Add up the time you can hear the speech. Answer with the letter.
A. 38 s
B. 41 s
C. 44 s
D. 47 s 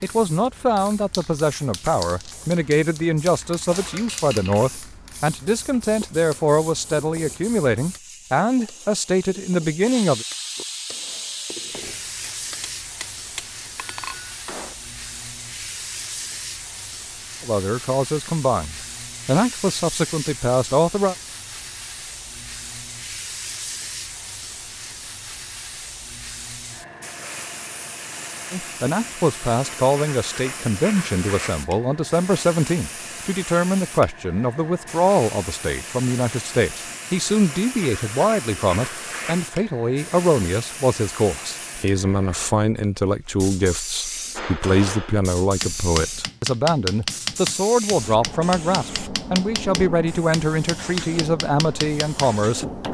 A.